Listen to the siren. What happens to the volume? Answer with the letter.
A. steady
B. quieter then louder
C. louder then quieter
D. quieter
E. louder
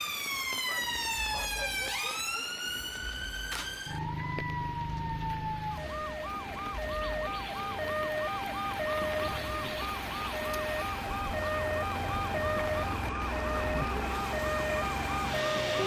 A.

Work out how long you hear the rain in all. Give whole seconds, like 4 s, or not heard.
16 s.